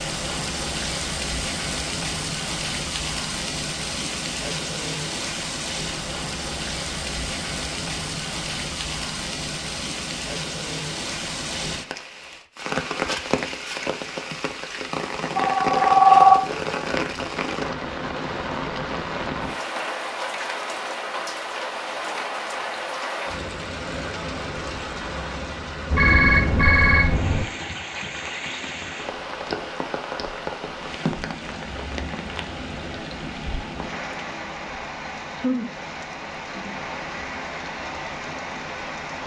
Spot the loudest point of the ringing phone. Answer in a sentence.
The loudest moment of the ringing phone is at 16 seconds.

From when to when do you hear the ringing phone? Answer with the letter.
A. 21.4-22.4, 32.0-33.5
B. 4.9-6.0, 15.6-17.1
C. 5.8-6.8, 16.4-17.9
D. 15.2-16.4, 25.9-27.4
D.